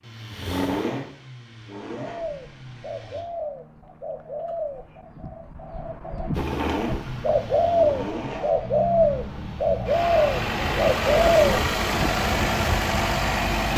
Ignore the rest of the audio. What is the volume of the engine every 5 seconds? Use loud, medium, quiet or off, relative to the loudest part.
medium, medium, loud.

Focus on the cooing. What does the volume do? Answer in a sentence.
The loudness of the cooing goes up.